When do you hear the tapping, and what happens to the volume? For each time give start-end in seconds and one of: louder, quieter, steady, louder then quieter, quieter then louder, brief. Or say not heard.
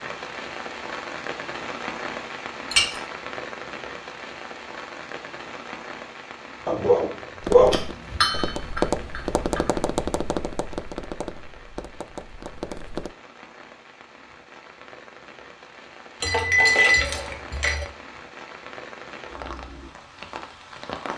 7.4-13.2 louder then quieter.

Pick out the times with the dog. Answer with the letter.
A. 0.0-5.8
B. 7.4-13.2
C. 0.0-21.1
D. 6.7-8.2
D.